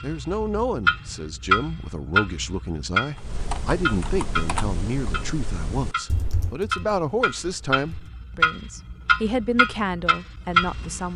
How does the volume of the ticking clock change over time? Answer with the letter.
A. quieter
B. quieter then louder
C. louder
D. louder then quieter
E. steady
B.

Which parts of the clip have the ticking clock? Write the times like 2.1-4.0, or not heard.
0.0-11.1.